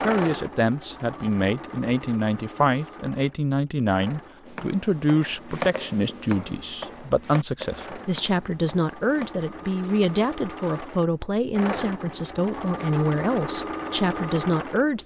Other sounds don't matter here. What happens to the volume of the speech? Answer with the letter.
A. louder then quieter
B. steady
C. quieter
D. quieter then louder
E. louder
B.